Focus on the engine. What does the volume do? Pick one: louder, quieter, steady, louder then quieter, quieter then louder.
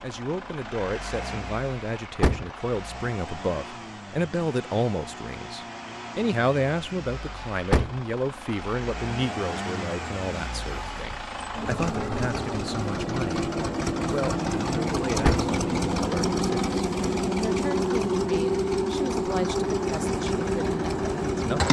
louder.